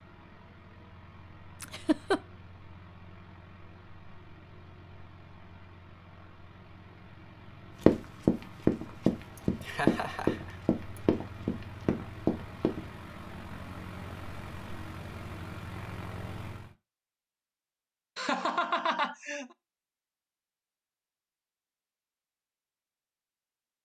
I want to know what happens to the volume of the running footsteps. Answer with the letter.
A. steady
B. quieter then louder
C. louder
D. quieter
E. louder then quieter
D.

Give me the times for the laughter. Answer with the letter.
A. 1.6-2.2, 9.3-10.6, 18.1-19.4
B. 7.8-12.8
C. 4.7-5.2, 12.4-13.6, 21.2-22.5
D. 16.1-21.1
A.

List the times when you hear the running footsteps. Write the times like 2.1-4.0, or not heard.
7.8-12.8.